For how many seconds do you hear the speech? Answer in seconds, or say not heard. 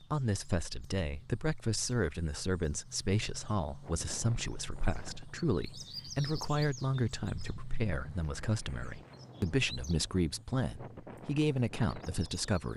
13 s.